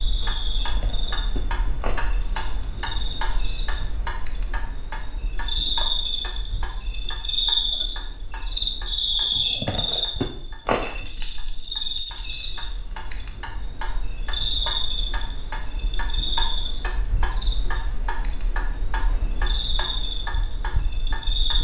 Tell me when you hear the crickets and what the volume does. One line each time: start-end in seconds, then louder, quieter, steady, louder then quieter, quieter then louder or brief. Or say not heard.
0.0-21.5 louder then quieter.